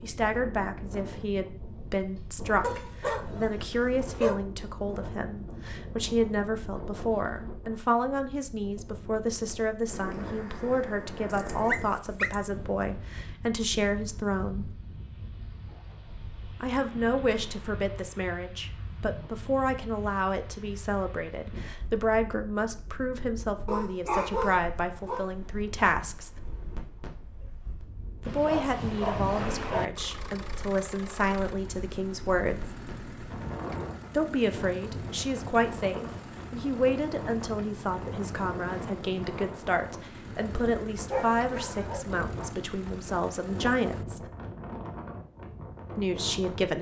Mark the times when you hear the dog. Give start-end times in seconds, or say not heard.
2.6-4.5, 11.3-12.3, 23.6-25.2, 28.2-29.9, 41.1-42.0.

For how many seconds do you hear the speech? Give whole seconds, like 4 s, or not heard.
40 s.